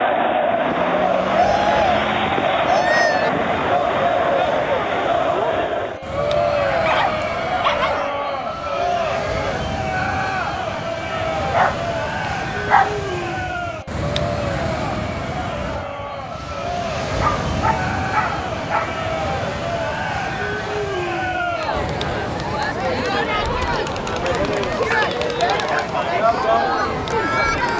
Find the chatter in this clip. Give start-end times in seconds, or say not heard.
0.0-27.7.